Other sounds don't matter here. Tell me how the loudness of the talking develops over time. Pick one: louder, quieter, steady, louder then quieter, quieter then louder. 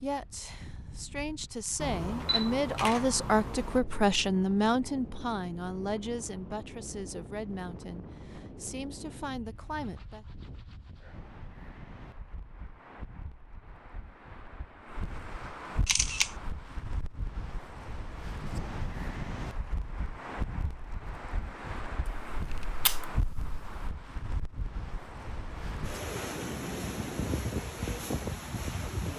louder then quieter.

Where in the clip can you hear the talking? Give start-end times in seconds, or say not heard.
0.0-10.2.